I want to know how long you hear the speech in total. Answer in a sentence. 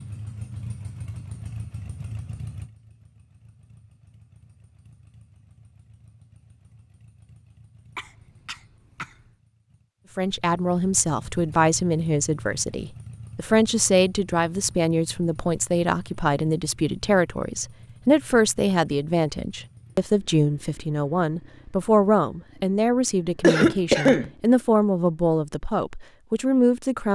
You can hear the speech for 17 seconds altogether.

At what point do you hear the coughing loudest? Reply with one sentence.
The volume of the coughing peaks at 24 seconds.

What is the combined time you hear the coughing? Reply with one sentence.
The coughing can be heard for 2 seconds in total.